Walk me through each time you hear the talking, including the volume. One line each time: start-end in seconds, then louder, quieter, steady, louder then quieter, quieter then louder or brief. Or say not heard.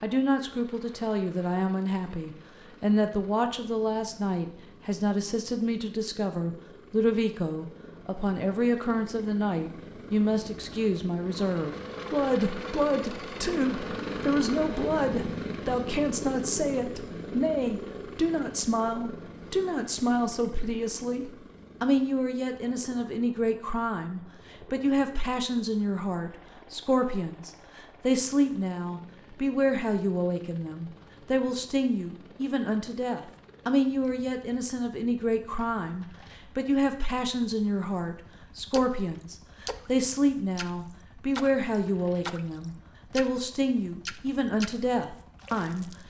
0.0-46.0 steady.